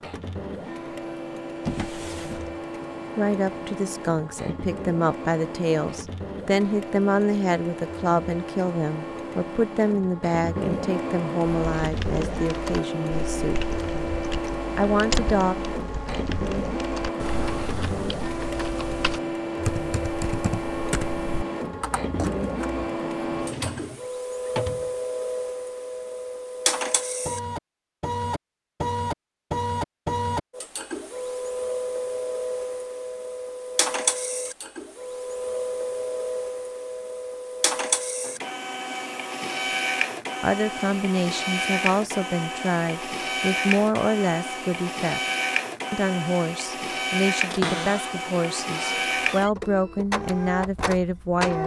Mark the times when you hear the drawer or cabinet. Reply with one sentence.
You can hear the drawer or cabinet from 1.6 to 2.5 s, from 23.4 to 24.9 s and from 47.5 to 49.5 s.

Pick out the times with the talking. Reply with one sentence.
You can hear the talking from 3.1 to 13.7 s, from 14.8 to 15.6 s, from 40.4 to 45.2 s and from 45.9 to 51.6 s.